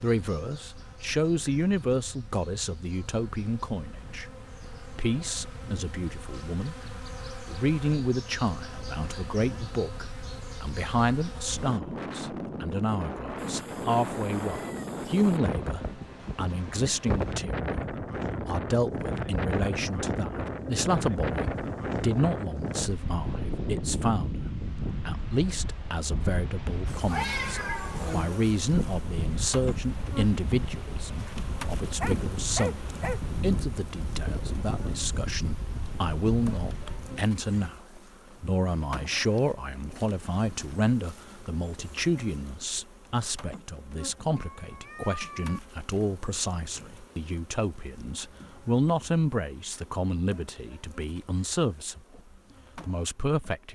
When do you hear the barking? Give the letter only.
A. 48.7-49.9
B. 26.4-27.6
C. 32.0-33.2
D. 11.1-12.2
C.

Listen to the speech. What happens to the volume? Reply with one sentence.
The volume of the speech stays about the same.